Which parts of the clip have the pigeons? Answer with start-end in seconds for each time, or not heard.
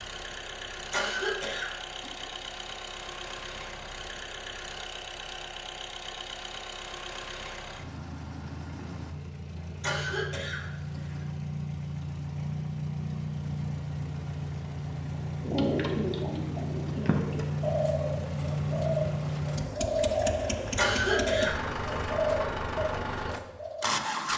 15.4-23.9.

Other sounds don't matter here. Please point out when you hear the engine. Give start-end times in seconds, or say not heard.
0.0-24.3.